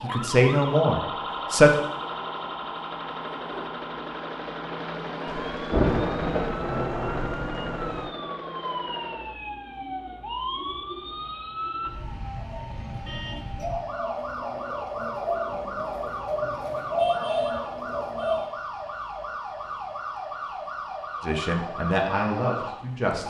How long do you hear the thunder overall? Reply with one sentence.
The thunder can be heard for 3 seconds in total.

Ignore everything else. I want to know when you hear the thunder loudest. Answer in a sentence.
The loudest moment of the thunder is at 6 seconds.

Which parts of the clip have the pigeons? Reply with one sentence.
You can hear the pigeons from 9.1 to 18.5 s.